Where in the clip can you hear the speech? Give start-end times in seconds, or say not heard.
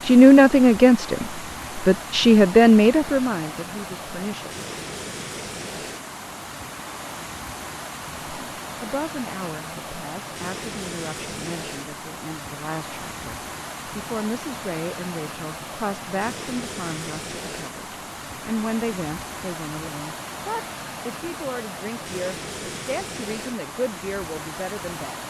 0.0-4.5, 8.2-25.2.